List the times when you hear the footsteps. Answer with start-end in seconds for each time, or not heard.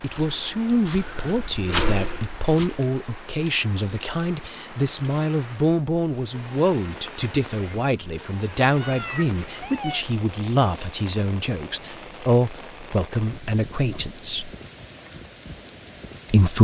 0.1-2.8.